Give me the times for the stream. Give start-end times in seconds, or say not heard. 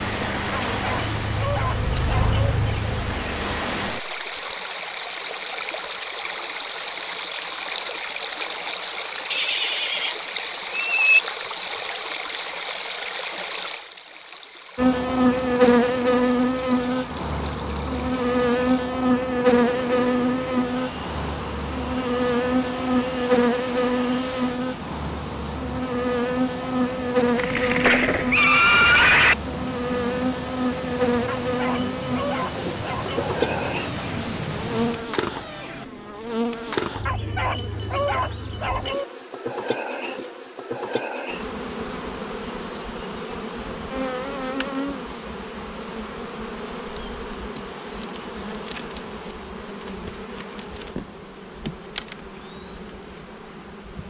0.0-35.1.